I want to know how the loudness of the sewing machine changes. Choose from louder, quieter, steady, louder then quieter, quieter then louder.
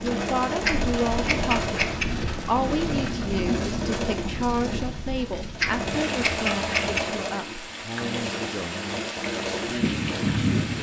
steady.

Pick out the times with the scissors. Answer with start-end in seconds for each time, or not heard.
0.6-2.0, 5.5-7.0.